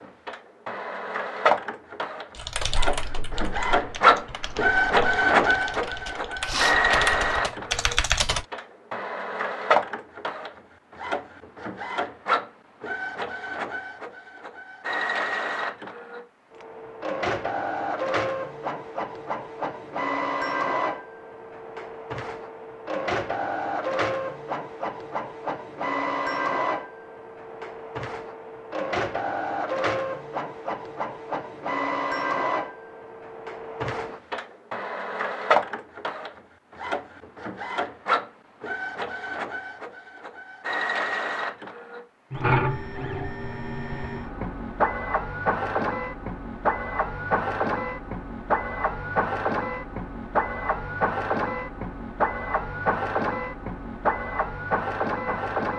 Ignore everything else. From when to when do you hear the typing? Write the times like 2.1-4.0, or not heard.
2.4-8.4.